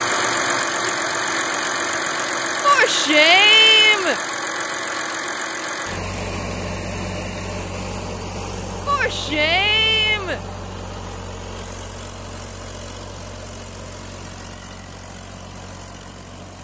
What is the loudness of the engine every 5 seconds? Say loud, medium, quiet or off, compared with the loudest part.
loud, medium, quiet, quiet.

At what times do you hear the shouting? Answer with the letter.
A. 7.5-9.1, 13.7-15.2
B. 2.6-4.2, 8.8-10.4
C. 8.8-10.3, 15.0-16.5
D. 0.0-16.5
B.